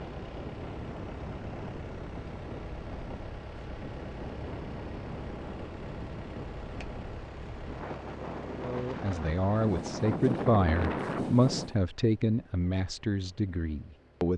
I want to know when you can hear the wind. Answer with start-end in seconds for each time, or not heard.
0.0-11.8.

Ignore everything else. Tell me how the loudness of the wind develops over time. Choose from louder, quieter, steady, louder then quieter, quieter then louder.
louder.